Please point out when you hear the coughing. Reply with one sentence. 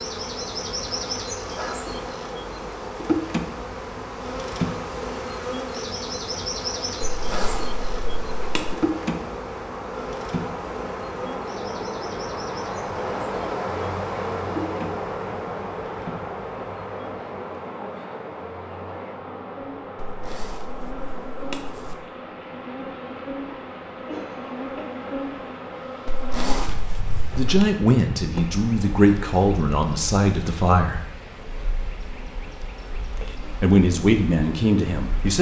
You can hear the coughing from 24.1 to 25.2 s.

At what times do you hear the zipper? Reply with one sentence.
The zipper can be heard from 7.1 to 8.8 s, from 19.9 to 21.9 s and from 26.1 to 27.6 s.